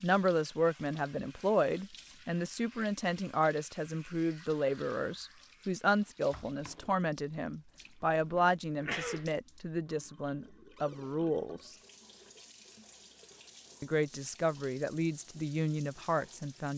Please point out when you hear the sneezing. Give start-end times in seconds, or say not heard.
8.3-9.2.